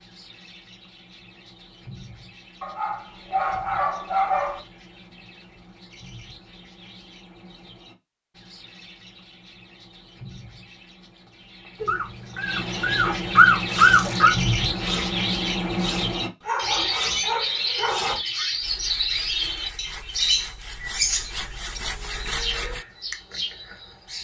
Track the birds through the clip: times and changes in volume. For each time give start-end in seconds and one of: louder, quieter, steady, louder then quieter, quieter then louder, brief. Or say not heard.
0.0-24.1 louder.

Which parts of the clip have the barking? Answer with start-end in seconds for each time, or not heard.
2.6-4.6, 11.8-14.3, 16.4-18.1.